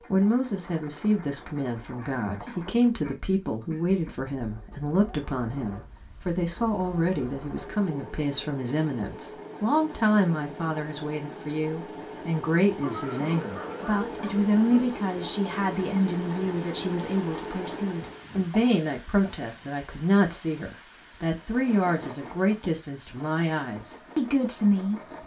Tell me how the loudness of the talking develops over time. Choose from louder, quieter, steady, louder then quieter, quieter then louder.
steady.